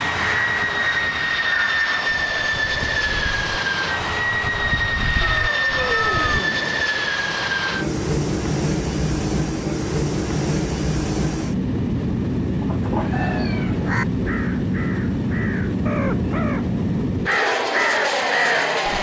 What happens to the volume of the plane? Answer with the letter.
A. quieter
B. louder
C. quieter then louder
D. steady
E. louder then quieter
D.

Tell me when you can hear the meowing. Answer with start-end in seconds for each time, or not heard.
5.2-6.8, 12.6-13.8.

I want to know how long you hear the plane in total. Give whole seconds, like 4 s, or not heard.
19 s.